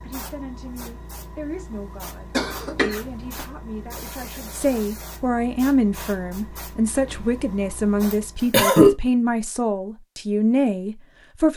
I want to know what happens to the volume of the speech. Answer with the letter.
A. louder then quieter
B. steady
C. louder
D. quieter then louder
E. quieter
C.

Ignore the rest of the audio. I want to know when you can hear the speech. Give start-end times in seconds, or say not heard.
0.0-11.5.